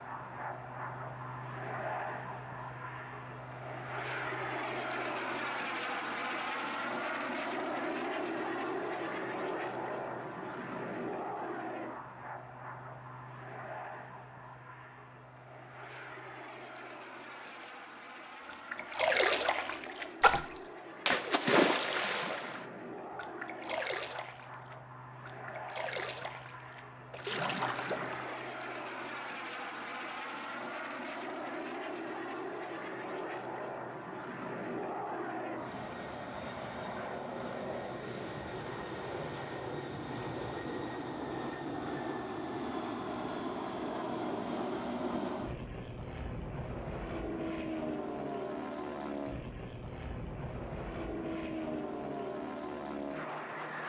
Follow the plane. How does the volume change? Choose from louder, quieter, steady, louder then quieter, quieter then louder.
quieter then louder.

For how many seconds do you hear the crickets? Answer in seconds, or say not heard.
not heard.